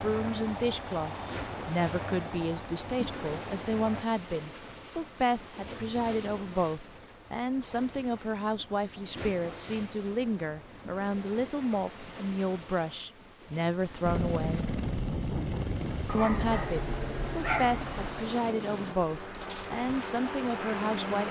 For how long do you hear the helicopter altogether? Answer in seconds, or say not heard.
11 s.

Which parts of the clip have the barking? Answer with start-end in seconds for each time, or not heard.
16.1-18.1.